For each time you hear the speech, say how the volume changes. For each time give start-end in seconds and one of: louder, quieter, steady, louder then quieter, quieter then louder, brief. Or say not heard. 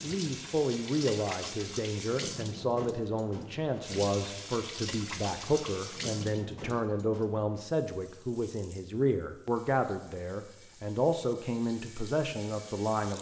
0.0-13.1 steady.